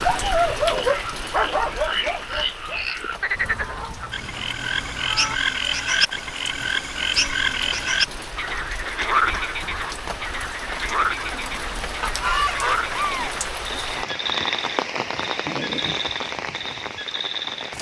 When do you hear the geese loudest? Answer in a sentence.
The loudest moment of the geese is at 12 seconds.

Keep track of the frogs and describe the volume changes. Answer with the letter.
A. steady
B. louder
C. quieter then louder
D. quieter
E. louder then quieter
E.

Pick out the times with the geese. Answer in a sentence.
You can hear the geese from 3.4 to 5.3 s and from 12.0 to 13.4 s.